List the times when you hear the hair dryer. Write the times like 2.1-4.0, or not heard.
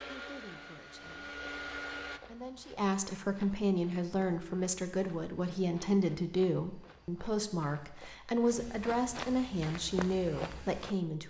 0.0-2.2.